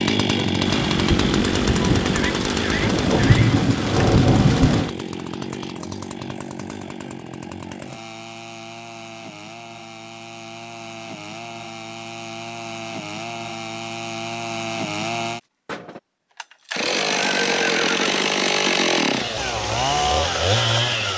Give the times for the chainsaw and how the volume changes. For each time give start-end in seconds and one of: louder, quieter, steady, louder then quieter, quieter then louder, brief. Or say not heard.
0.0-21.1 quieter then louder.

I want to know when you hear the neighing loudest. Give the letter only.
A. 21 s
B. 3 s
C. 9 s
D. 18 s
D.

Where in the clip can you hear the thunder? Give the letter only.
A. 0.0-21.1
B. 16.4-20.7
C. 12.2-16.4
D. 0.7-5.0
D.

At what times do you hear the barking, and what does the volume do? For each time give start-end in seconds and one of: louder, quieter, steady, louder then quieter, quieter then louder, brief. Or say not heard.
not heard.